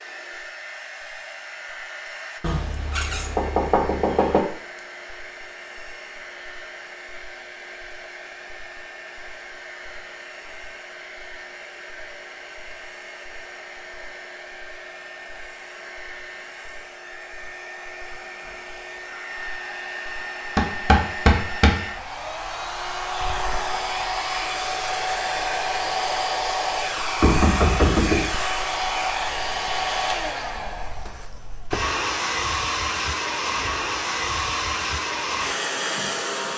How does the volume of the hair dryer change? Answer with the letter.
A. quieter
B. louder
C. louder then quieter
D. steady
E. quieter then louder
B.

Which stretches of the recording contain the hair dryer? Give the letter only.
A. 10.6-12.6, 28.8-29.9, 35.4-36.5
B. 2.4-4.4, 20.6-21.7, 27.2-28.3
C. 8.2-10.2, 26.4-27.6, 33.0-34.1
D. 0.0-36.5
D.